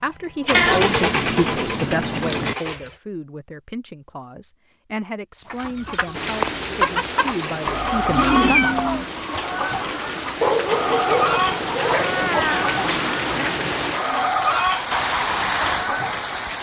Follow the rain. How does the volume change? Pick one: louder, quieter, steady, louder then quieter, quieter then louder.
louder.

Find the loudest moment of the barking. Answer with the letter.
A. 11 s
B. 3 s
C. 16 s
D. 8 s
A.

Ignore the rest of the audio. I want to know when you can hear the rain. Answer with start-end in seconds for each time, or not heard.
6.1-16.5.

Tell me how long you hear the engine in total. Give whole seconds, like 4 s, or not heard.
3 s.